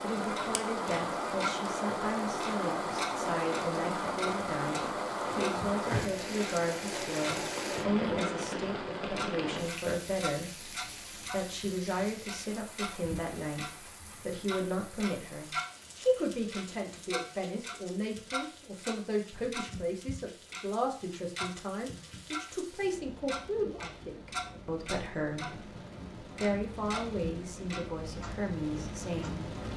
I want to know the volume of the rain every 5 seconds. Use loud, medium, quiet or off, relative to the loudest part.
loud, loud, quiet, quiet, quiet, medium.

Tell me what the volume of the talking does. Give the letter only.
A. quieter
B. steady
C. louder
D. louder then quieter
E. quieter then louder
B.